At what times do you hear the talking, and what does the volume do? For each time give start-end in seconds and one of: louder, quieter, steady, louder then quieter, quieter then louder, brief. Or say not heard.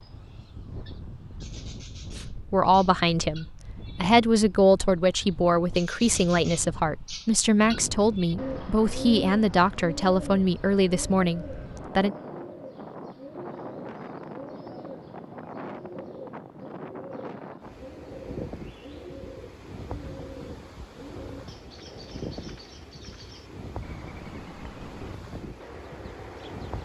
2.3-12.2 steady.